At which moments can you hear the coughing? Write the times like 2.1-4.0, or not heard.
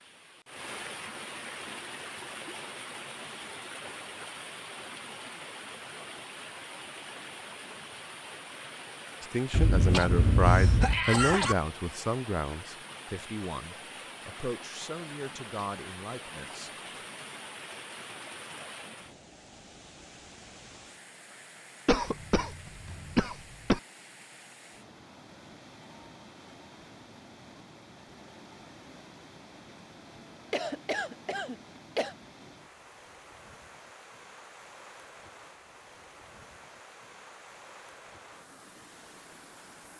9.5-11.6, 21.9-23.8, 30.5-32.1.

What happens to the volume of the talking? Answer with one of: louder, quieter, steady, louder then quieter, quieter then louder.
quieter.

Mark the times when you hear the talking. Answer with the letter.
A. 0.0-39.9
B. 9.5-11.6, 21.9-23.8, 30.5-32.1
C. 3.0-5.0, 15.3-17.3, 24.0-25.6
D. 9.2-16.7
D.